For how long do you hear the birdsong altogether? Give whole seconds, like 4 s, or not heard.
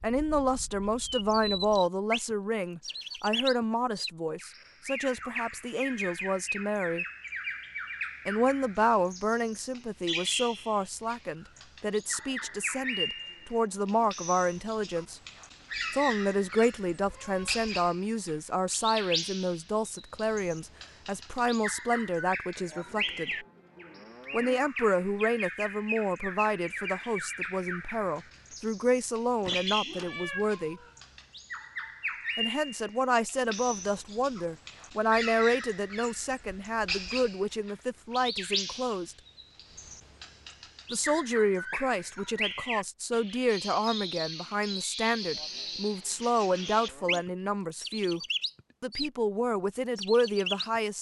50 s.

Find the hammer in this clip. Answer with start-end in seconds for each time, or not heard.
not heard.